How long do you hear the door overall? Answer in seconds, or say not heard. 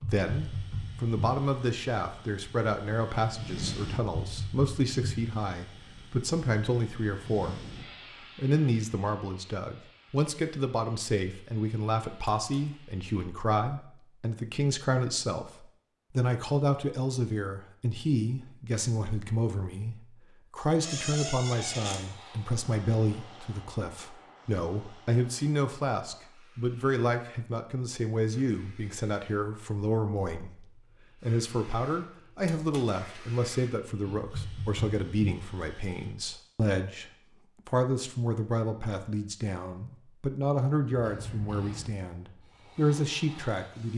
2 s.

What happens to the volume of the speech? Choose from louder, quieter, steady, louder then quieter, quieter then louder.
steady.